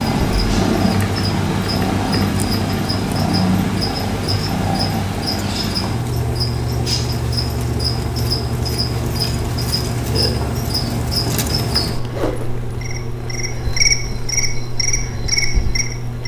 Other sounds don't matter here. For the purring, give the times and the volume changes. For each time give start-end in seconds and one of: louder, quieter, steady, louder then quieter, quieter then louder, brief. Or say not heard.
0.0-16.2 quieter.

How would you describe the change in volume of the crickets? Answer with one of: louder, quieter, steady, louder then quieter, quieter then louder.
louder.